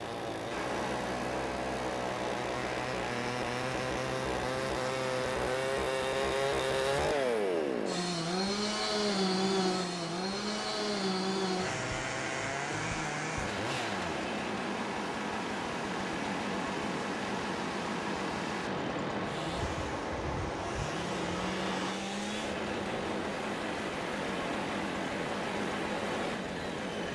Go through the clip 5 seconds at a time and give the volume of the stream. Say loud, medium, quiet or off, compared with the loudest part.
loud, medium, loud, loud, loud, loud.